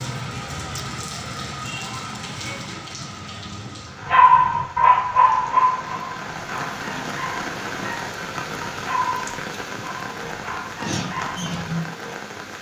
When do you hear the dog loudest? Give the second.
4 s.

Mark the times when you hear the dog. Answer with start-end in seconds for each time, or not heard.
4.0-11.8.